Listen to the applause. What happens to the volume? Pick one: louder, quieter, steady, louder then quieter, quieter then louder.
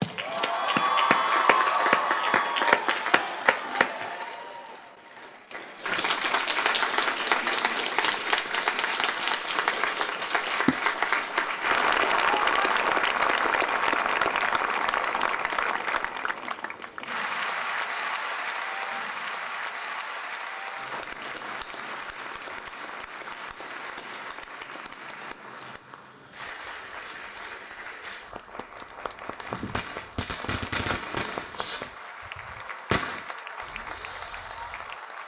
quieter.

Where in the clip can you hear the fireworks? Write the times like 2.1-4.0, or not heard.
29.4-34.9.